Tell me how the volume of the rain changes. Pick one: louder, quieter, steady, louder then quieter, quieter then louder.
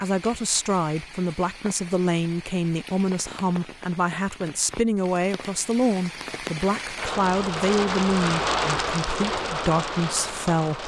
louder.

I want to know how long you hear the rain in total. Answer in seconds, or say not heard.
11 s.